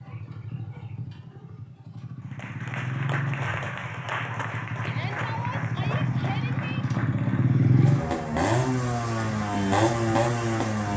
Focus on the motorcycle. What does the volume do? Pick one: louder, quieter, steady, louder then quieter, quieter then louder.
louder.